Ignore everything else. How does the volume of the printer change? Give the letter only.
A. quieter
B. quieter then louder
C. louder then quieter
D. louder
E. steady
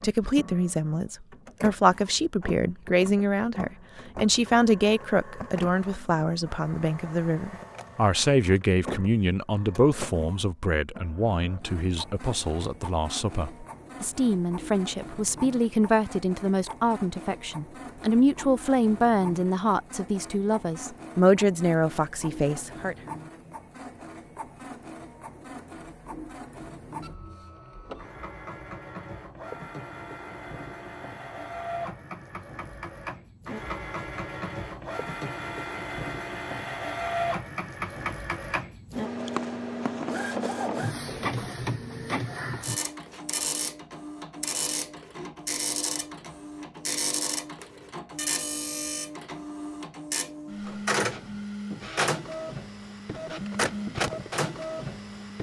D.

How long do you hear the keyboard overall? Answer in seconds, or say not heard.
not heard.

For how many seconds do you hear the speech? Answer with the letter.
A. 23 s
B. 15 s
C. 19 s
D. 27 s
A.